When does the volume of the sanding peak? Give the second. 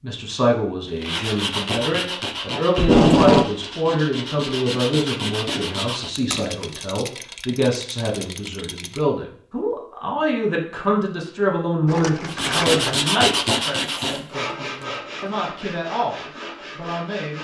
13 s.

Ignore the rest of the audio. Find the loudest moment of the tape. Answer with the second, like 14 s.
3 s.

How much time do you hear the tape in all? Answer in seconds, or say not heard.
2 s.